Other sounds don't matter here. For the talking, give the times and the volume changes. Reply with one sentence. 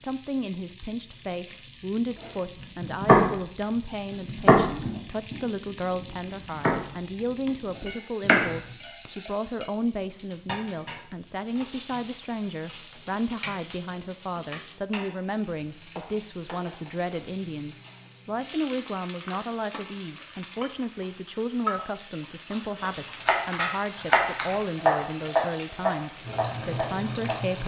The talking can be heard from 0.0 to 27.6 s, at a steady volume.